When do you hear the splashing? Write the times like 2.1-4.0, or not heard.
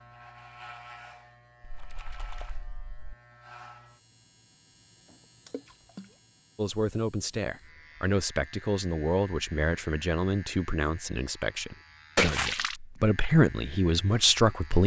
1.6-3.1, 5.5-6.0, 12.2-12.8.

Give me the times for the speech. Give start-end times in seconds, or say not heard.
6.5-14.8.